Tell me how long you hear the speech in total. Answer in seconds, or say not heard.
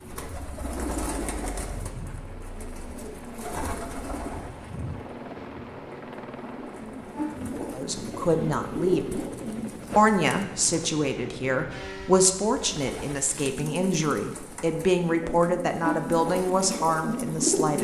9 s.